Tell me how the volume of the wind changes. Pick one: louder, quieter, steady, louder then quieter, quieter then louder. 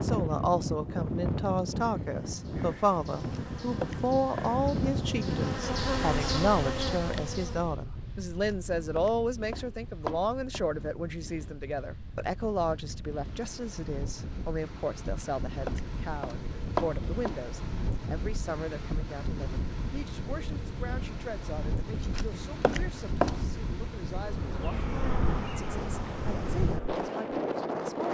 quieter then louder.